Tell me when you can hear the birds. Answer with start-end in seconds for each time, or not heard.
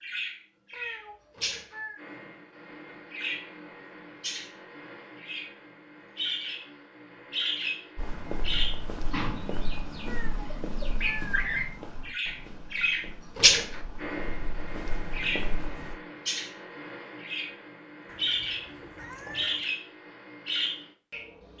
0.0-21.5.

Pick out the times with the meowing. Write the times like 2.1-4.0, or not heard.
0.7-2.0, 10.0-11.5, 18.1-19.6.